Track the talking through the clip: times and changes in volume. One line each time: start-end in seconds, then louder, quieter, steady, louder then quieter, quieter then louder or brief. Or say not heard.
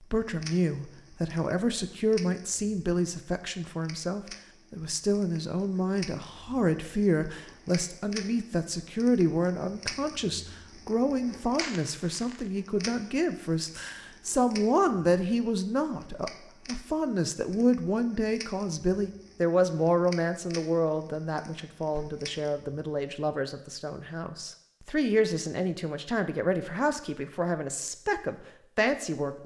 0.0-29.4 steady.